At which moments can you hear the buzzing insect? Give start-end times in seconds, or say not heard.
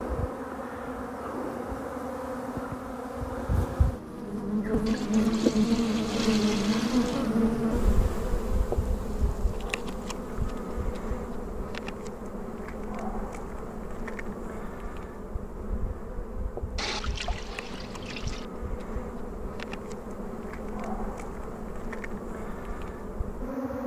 0.0-23.8.